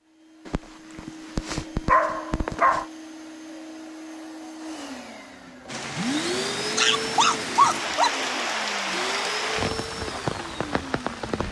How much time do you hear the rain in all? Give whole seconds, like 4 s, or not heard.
6 s.